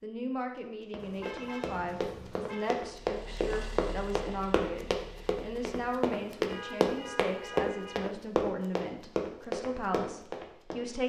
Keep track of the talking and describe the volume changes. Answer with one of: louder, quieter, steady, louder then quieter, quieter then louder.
steady.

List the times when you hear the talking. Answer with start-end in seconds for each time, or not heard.
0.0-11.0.